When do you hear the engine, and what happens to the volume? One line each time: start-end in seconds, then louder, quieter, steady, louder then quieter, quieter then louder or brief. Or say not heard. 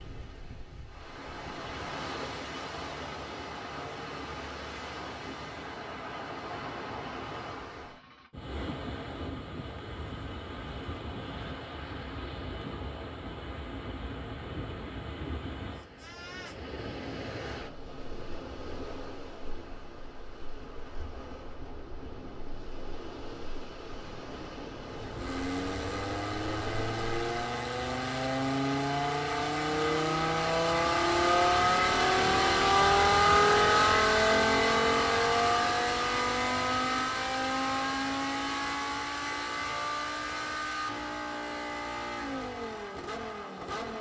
24.8-43.9 louder then quieter.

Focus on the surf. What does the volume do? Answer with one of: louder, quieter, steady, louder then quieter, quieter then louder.
steady.